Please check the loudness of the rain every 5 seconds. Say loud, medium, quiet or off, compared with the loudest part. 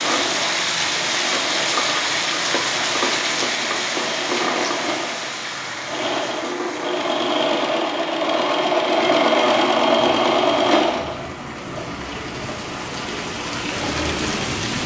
loud, medium, medium.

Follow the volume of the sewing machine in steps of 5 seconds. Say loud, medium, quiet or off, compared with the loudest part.
medium, loud, loud.